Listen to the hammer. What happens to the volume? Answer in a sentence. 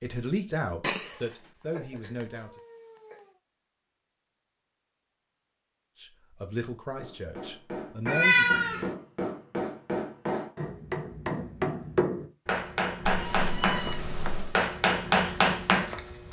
The volume of the hammer goes up.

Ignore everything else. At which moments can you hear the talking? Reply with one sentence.
The talking can be heard from 0.0 to 2.5 s and from 6.0 to 8.8 s.